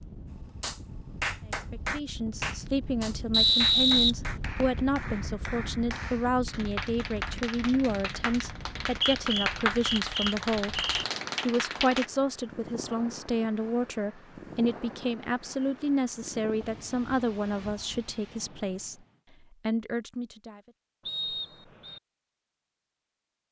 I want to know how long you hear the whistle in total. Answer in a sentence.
You can hear the whistle for 5 seconds altogether.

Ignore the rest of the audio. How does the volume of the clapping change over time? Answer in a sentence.
The volume of the clapping goes down, then up.